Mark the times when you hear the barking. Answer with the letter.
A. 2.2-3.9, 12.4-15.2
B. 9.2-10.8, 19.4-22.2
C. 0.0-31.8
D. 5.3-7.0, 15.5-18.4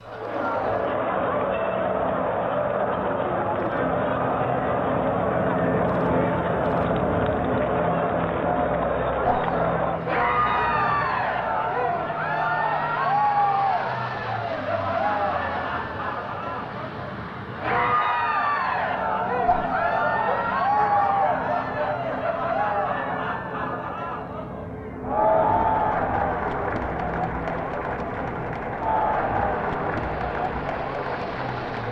B.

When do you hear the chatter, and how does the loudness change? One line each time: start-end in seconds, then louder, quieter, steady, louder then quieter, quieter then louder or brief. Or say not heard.
0.1-31.8 steady.